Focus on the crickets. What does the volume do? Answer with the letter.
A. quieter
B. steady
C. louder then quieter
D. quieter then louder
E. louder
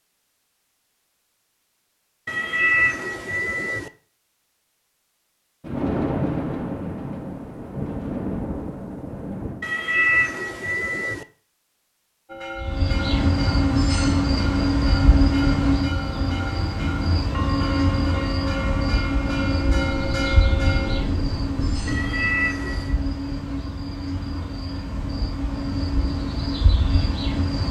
A.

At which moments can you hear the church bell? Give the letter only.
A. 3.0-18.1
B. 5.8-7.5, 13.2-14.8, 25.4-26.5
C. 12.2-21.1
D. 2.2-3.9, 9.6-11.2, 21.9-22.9
C.